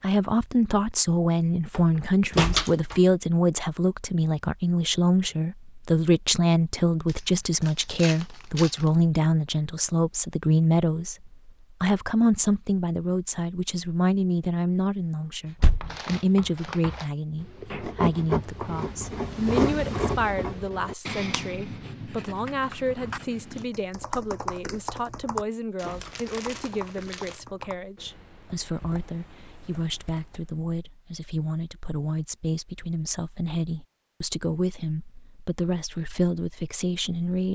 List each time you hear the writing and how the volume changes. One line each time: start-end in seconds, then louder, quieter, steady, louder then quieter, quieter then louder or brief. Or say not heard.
15.4-23.6 louder then quieter.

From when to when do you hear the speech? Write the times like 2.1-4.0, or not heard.
0.0-37.5.